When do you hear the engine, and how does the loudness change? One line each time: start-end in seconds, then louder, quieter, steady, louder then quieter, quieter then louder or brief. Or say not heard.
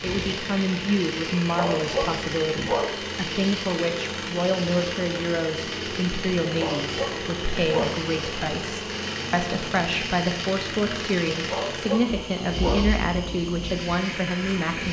0.0-14.8 steady.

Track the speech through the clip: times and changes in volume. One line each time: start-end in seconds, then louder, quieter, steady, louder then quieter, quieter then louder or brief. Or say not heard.
0.0-14.8 steady.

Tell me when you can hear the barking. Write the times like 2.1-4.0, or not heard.
1.6-3.0, 6.5-8.1, 11.4-12.9.